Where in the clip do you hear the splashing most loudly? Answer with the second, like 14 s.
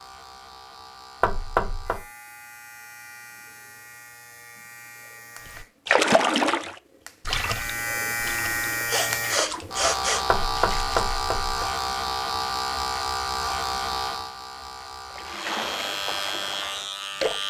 6 s.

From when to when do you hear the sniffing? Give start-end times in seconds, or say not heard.
8.7-10.2.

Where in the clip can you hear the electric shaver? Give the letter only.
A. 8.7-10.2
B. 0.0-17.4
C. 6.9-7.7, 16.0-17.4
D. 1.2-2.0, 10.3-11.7
B.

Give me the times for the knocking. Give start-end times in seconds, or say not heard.
1.2-2.0, 10.3-11.7.